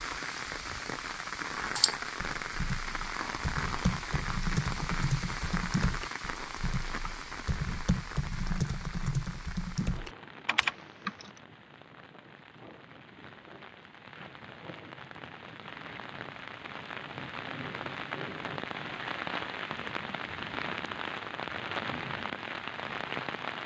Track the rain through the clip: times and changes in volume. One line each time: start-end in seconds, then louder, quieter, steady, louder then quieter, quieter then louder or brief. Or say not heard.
0.0-23.6 quieter then louder.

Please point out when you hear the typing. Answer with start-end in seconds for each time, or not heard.
1.8-11.3.